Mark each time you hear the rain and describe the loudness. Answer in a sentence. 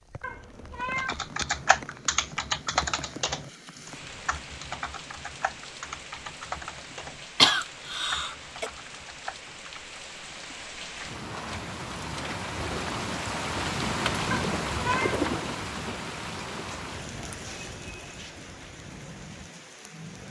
The rain can be heard from 0.0 to 20.2 s, getting louder then quieter.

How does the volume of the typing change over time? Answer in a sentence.
The loudness of the typing goes down.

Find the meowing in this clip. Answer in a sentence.
You can hear the meowing from 0.2 to 1.1 s and from 14.3 to 15.2 s.